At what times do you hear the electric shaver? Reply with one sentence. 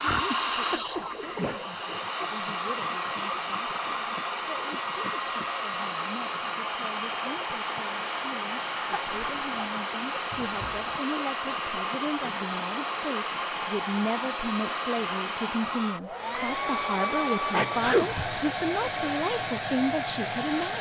The electric shaver can't be heard in this clip.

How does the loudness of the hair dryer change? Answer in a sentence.
The volume of the hair dryer stays about the same.